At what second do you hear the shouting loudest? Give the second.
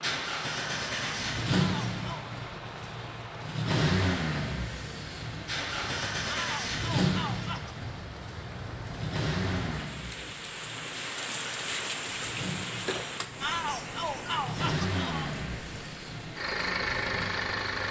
14 s.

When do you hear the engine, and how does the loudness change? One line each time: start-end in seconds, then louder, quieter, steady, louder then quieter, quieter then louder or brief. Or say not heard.
0.0-17.8 quieter then louder.